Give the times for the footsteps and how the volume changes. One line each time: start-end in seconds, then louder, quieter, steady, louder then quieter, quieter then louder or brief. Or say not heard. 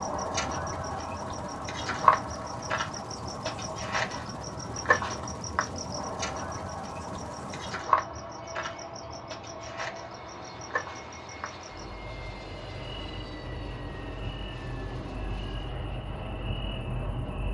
not heard.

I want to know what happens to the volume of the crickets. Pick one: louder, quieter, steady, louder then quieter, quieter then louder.
quieter.